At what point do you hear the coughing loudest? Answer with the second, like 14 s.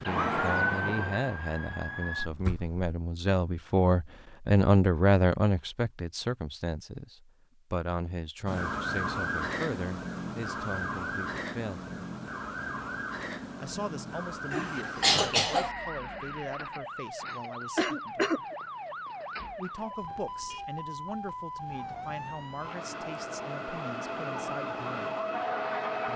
15 s.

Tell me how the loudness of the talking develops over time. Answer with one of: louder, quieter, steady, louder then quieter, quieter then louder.
quieter.